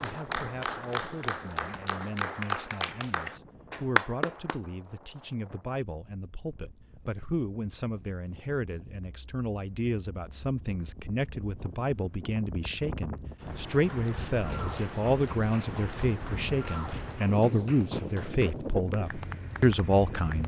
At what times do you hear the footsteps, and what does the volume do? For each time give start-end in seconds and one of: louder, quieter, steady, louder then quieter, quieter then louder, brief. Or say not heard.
not heard.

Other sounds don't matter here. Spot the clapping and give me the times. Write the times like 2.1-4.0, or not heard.
0.0-4.5, 13.9-20.4.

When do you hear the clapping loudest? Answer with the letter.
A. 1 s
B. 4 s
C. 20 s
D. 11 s
B.